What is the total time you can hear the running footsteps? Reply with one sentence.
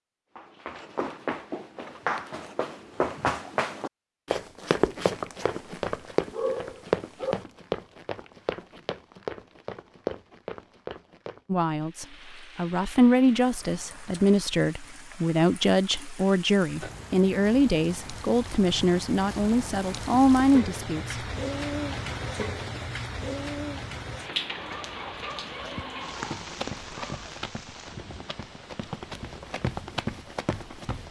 The running footsteps can be heard for 16 seconds in total.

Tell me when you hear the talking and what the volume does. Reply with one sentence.
The talking can be heard from 11.5 to 21.2 s, at a steady volume.